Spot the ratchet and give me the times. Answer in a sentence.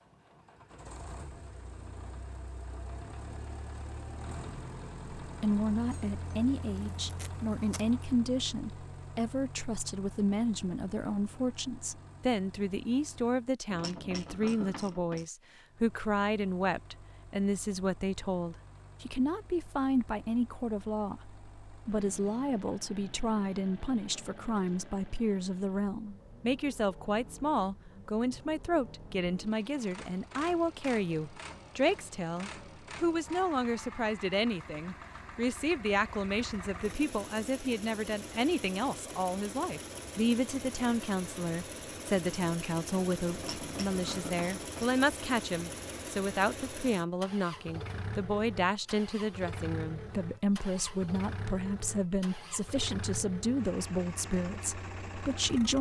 You can hear the ratchet from 13.7 to 15.2 s and from 43.3 to 44.9 s.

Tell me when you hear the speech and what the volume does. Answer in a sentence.
You can hear the speech from 5.2 to 55.7 s, at a steady volume.